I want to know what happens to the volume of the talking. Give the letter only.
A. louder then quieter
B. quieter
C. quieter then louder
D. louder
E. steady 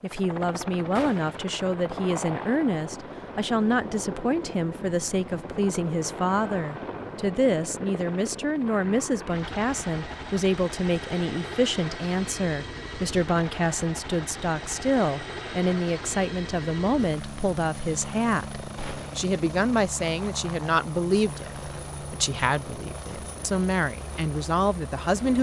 E.